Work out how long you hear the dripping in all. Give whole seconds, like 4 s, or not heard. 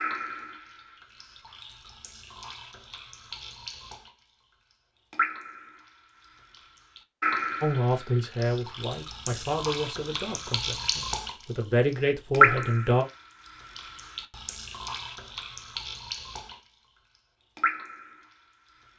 16 s.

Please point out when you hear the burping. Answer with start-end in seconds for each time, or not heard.
not heard.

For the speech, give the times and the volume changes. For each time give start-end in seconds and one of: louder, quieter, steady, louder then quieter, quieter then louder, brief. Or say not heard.
7.6-13.1 quieter then louder.